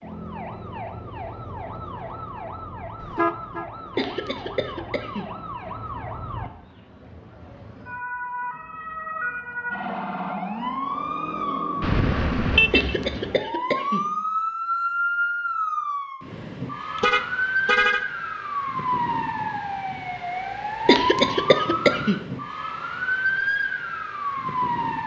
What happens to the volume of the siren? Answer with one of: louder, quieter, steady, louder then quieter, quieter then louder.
louder.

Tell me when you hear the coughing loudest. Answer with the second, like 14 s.
21 s.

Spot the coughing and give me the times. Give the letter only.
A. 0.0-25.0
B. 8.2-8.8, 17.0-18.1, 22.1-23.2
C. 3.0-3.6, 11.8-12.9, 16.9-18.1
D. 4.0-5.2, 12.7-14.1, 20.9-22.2
D.